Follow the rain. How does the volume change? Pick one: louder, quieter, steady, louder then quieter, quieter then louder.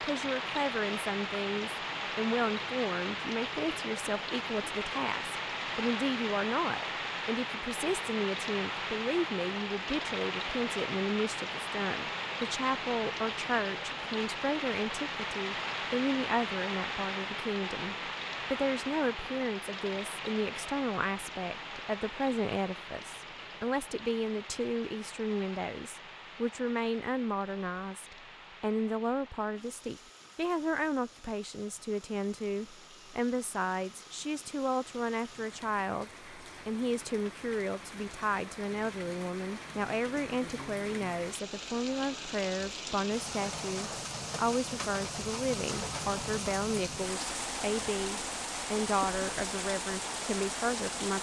quieter then louder.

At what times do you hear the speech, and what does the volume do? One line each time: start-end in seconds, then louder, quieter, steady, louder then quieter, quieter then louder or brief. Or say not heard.
0.0-51.1 steady.